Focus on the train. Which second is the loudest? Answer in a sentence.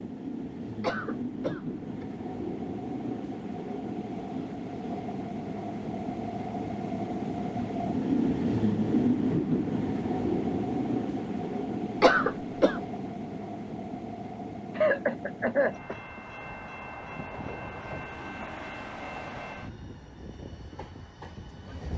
The volume of the train peaks at 9 seconds.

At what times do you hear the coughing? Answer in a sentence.
You can hear the coughing from 0.8 to 2.0 s, from 12.0 to 12.8 s and from 14.8 to 16.2 s.